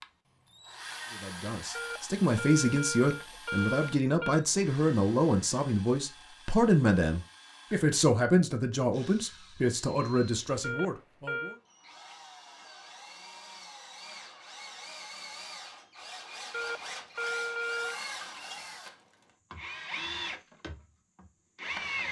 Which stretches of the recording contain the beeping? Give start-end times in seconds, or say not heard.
1.8-4.5, 10.6-11.6, 16.5-18.0.